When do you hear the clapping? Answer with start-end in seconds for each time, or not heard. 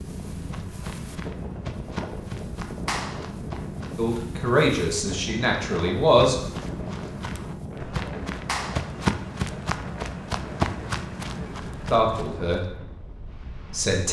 2.9-3.3, 8.4-8.9.